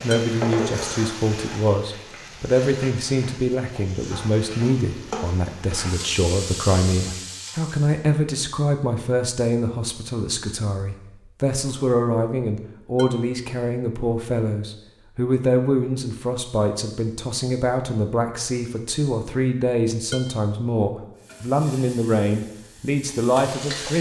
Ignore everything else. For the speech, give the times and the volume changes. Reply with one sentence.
The speech can be heard from 0.0 to 23.9 s, at a steady volume.